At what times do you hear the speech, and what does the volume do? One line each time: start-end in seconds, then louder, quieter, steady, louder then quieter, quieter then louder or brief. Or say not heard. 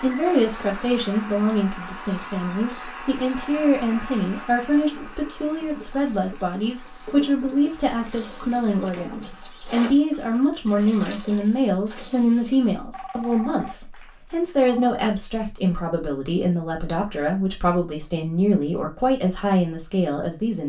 0.0-20.6 steady.